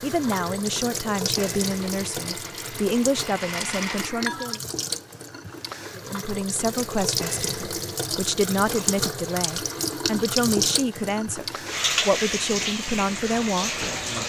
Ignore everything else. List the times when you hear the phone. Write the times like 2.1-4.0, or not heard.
3.9-4.6.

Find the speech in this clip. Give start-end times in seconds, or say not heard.
0.0-4.6, 6.0-13.8.